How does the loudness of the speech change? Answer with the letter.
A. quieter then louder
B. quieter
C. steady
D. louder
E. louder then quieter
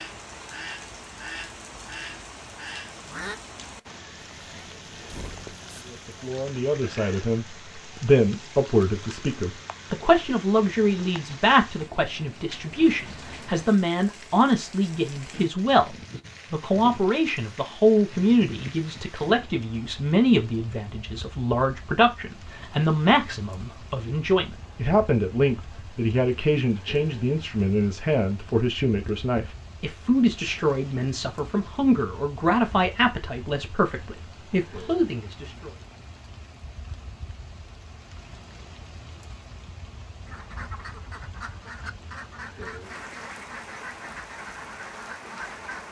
C.